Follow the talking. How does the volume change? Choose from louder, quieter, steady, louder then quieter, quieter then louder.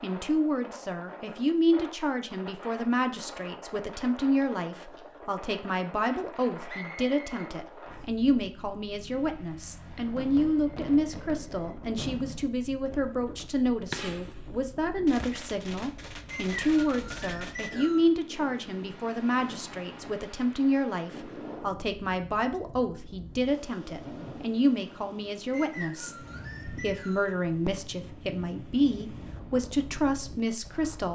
steady.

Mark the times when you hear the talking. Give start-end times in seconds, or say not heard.
0.0-31.0.